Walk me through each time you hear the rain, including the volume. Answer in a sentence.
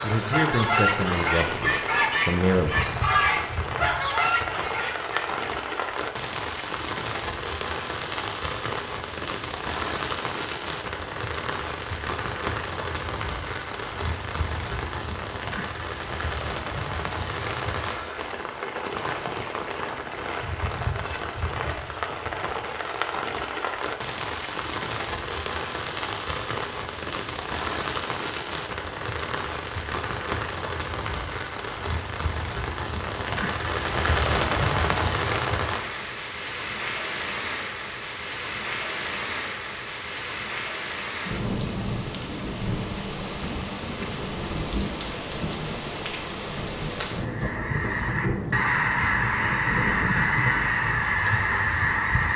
The rain can be heard from 0.0 to 52.3 s, at a steady volume.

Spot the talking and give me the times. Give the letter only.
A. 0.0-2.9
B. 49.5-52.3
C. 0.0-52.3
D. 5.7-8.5
A.